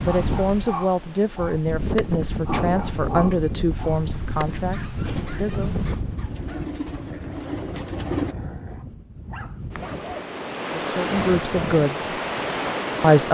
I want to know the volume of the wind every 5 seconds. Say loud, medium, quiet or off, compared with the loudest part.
loud, medium, loud.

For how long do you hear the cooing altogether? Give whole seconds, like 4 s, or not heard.
6 s.